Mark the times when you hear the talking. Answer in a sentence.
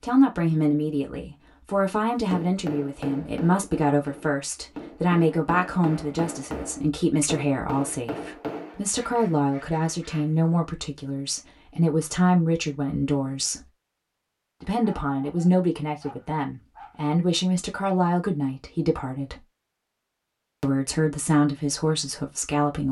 The talking can be heard from 0.0 to 13.7 s, from 14.6 to 19.4 s and from 20.6 to 22.8 s.